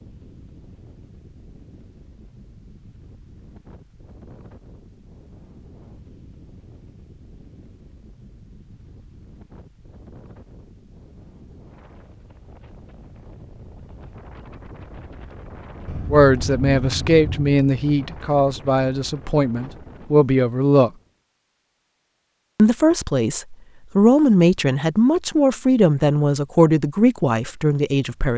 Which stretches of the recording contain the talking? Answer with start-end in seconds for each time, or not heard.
16.1-20.9, 22.6-28.3.